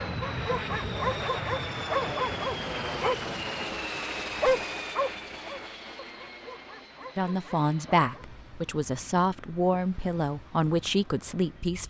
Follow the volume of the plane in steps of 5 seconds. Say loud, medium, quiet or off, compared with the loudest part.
loud, quiet, quiet.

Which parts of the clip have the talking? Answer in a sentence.
You can hear the talking from 7.2 to 11.8 s.